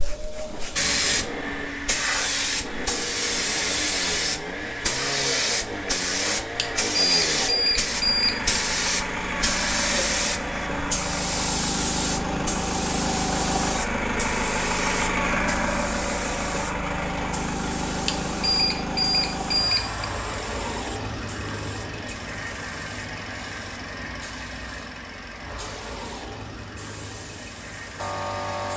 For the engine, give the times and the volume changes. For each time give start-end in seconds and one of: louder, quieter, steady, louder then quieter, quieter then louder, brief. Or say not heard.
0.0-28.7 louder then quieter.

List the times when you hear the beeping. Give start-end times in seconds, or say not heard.
6.5-8.5, 18.1-20.1.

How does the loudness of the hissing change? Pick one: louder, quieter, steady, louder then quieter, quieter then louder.
quieter.